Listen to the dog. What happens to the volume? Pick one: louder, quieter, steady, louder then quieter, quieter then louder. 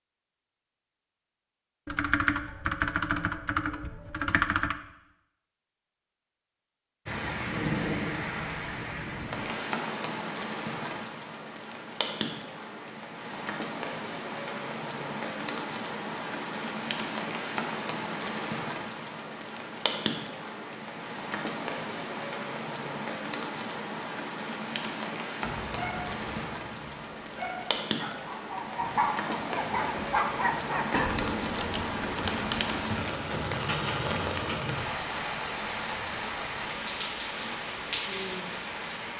louder.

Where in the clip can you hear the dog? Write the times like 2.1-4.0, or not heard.
25.4-30.9.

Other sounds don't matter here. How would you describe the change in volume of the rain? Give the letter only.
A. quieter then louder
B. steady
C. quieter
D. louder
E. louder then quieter
B.